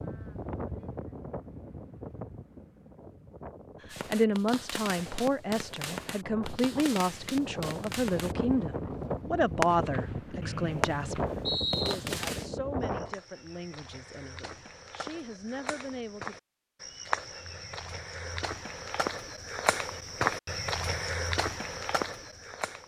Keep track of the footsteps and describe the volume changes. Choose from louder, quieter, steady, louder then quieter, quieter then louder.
louder.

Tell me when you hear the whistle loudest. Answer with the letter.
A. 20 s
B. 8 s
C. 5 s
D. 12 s
D.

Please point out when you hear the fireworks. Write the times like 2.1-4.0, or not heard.
3.9-12.5.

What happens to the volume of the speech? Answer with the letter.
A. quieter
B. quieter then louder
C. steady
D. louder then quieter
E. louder
A.